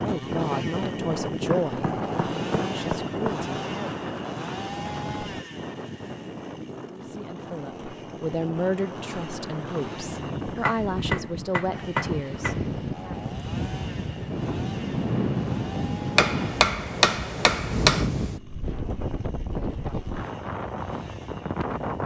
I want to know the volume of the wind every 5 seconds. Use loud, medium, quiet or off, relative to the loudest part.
loud, medium, loud, loud, loud.